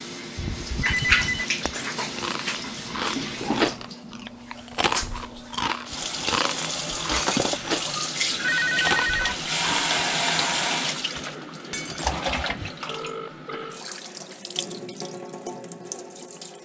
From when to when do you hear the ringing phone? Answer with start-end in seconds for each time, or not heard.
0.3-1.5, 8.4-9.3, 12.8-13.8.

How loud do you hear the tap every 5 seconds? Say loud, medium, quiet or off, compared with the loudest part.
loud, loud, loud, medium.